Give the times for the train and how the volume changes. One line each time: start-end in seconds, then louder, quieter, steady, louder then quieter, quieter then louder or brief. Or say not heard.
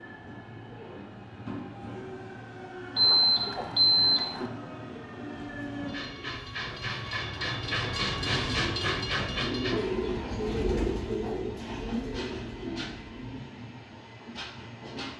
0.0-15.1 louder then quieter.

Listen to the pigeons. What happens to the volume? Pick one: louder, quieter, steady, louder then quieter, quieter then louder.
louder then quieter.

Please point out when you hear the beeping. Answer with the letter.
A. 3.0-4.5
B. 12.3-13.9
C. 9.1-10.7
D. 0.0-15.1
A.